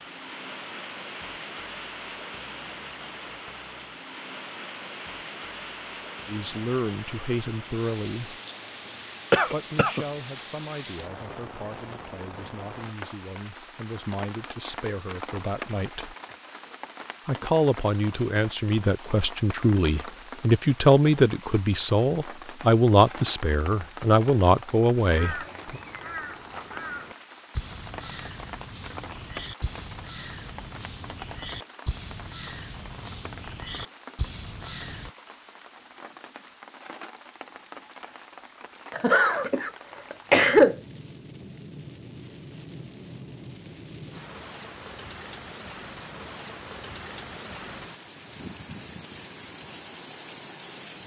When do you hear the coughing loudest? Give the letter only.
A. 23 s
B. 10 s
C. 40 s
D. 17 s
C.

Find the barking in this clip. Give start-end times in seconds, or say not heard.
not heard.